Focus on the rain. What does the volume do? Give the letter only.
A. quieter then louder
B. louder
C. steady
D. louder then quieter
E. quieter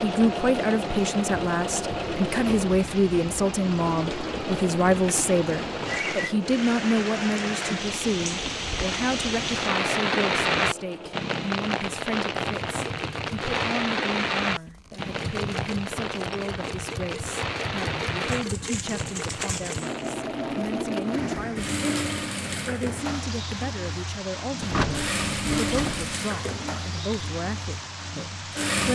D.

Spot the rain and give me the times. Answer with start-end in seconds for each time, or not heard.
0.0-28.8.